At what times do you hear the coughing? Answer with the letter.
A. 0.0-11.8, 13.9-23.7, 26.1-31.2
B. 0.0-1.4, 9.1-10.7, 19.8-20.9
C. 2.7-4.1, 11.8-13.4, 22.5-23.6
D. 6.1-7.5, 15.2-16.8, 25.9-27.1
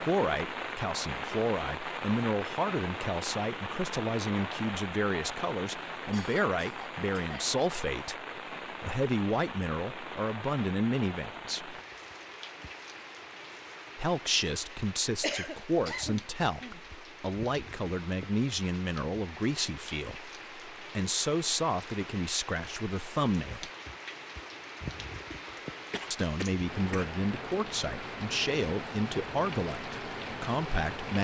D.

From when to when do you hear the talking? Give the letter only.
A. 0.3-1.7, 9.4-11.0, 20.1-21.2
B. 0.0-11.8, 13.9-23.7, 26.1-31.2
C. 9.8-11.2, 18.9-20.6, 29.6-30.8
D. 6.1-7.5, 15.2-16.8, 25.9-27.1
B.